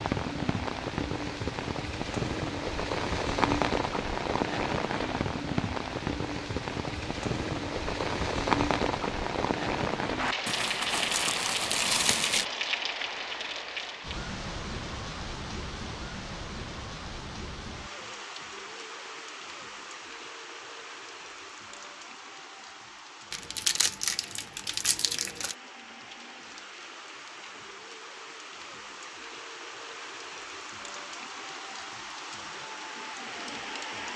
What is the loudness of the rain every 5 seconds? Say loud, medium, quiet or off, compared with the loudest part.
loud, loud, loud, medium, quiet, quiet, medium.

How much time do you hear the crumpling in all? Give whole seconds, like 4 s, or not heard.
4 s.